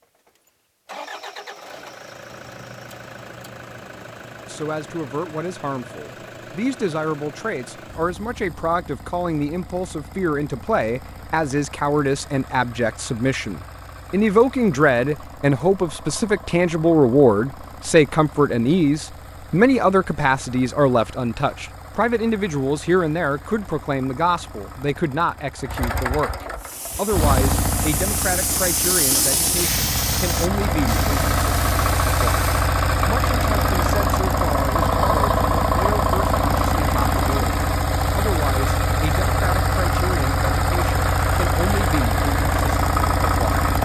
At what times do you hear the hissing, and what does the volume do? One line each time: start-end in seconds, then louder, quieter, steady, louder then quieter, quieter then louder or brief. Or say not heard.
26.6-32.5 louder then quieter.